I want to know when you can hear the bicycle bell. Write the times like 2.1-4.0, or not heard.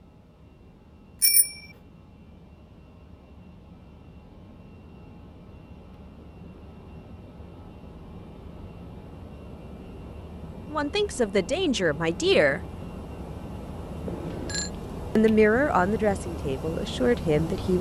1.2-1.6, 14.1-14.7.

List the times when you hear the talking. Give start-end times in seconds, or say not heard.
10.7-12.6, 15.2-17.7.